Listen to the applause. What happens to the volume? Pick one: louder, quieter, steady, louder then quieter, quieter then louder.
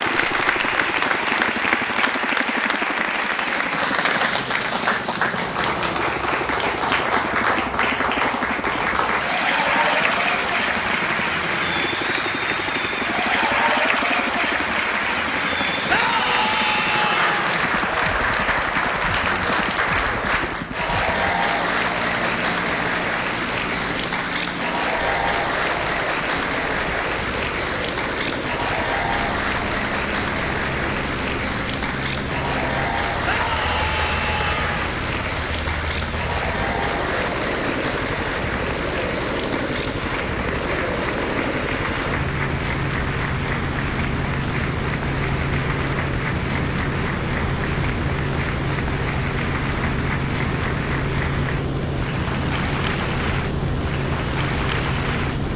quieter.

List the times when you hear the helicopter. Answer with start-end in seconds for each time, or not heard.
0.0-55.5.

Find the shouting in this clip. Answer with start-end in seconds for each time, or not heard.
15.8-17.6, 33.2-34.9.